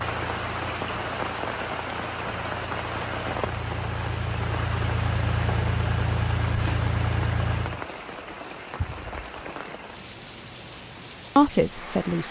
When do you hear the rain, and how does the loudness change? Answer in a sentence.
The rain can be heard from 0.0 to 12.2 s, getting quieter.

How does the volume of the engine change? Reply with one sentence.
The loudness of the engine goes up.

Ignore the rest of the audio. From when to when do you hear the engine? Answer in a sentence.
You can hear the engine from 0.0 to 7.8 s.